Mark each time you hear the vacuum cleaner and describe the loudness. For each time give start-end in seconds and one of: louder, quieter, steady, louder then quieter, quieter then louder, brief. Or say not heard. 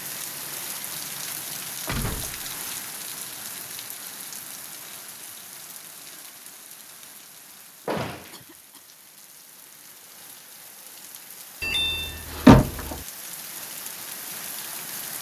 not heard.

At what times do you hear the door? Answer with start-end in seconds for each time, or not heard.
1.9-2.4, 7.8-8.3, 11.6-12.9.